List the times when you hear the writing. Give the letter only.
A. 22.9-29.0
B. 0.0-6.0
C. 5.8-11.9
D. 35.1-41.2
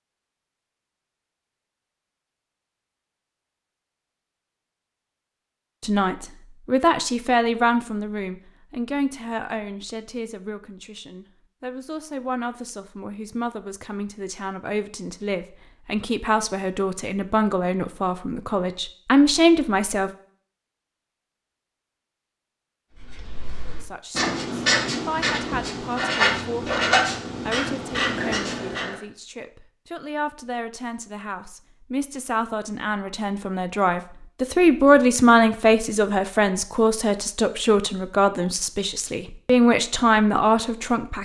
A.